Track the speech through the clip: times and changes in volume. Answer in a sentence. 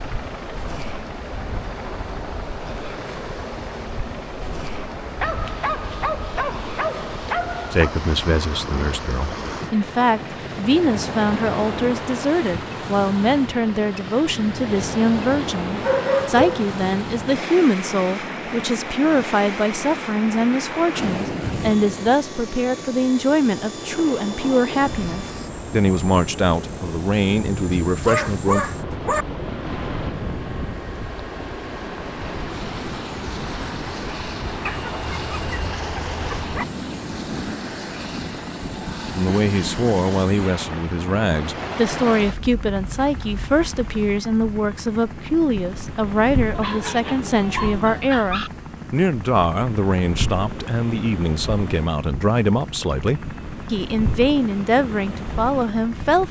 The speech can be heard from 7.7 to 28.6 s, at a steady volume; and from 39.1 to 56.2 s, at a steady volume.